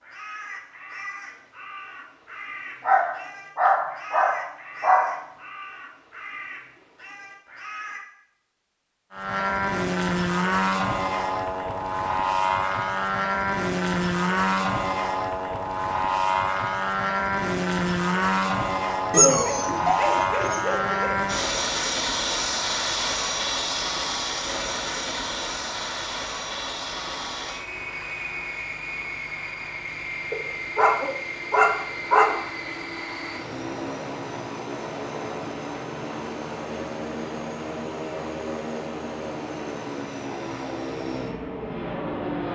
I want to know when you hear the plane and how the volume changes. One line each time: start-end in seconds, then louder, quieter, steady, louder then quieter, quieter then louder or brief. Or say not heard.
9.1-42.5 quieter.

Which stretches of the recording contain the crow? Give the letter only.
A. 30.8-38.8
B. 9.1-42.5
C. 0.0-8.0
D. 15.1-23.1
C.